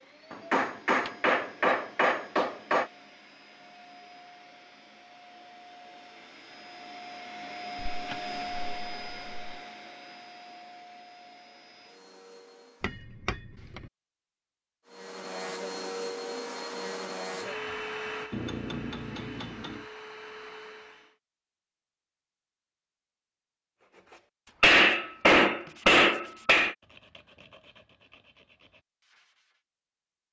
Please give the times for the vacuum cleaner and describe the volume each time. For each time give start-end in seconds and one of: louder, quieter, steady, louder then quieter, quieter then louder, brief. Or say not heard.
0.0-13.1 louder then quieter
14.8-21.1 quieter.